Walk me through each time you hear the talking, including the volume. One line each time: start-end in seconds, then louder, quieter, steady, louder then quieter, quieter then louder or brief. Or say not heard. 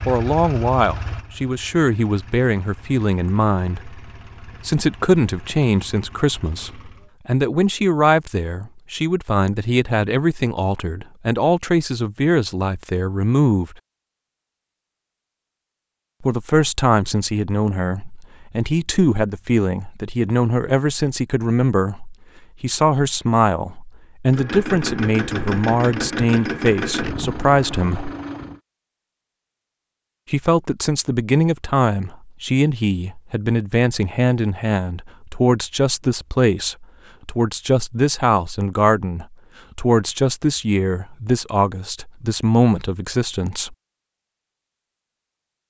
0.1-13.8 steady
16.2-28.1 steady
30.3-43.8 steady.